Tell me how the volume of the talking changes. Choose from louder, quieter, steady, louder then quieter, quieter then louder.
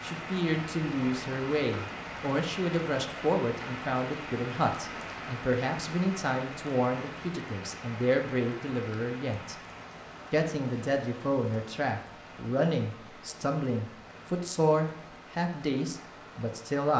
steady.